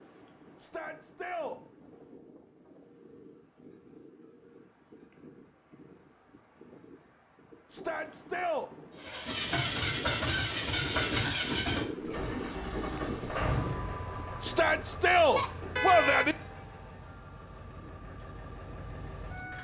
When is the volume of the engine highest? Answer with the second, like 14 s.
11 s.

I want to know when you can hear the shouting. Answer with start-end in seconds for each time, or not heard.
0.6-1.6, 7.7-8.7, 14.4-16.4.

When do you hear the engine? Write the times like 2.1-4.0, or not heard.
8.9-19.5.